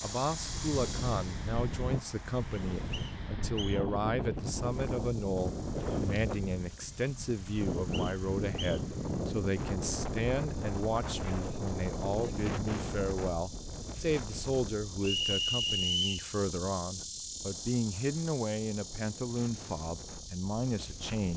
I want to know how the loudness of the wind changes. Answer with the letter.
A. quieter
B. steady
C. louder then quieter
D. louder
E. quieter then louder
A.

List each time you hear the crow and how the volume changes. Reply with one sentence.
The crow can't be heard in this clip.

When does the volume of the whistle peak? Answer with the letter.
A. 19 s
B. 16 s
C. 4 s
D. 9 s
B.